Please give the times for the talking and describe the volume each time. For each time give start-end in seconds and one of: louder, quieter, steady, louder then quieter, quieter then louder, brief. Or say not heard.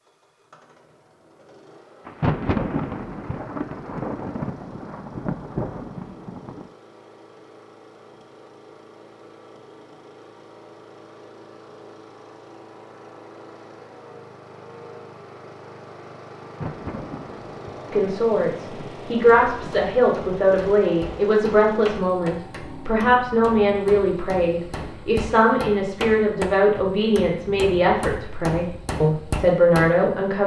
17.9-30.4 steady.